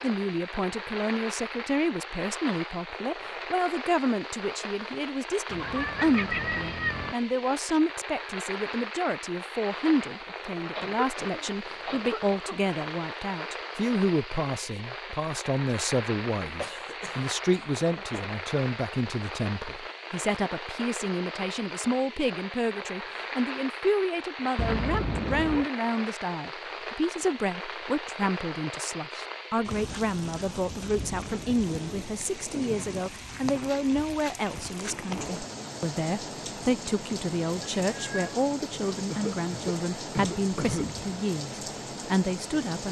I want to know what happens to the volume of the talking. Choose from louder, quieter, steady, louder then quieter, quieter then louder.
steady.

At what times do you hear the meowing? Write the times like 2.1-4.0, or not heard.
5.5-7.2, 24.6-25.7, 37.9-38.3.